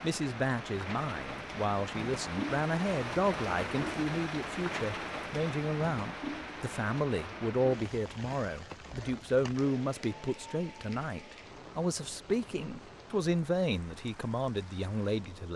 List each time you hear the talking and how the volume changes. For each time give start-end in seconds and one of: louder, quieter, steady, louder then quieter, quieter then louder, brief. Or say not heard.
0.0-15.5 steady.